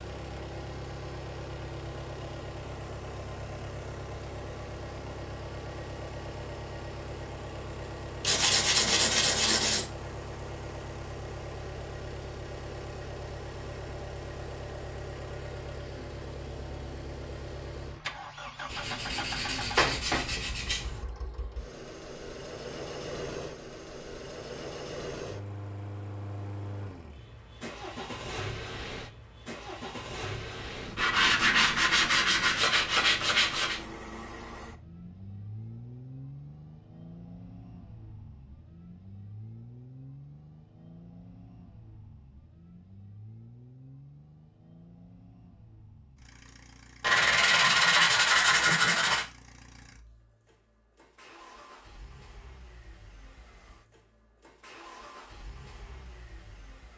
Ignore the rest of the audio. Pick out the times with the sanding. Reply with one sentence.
The sanding can be heard from 8.2 to 9.8 s, from 18.7 to 21.0 s, from 30.9 to 33.8 s and from 47.0 to 49.2 s.